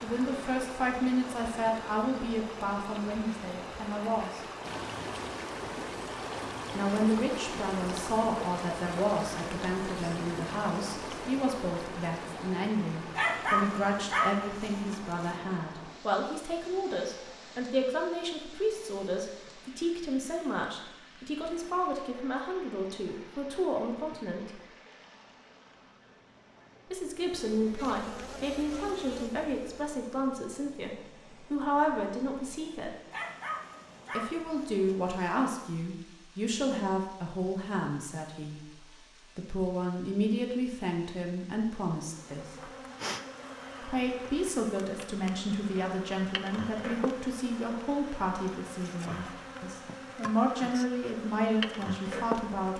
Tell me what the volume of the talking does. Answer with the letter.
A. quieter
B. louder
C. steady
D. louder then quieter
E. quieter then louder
C.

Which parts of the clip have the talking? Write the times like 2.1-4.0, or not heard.
0.0-4.4, 6.7-24.6, 26.9-33.0, 34.1-42.7, 43.8-52.7.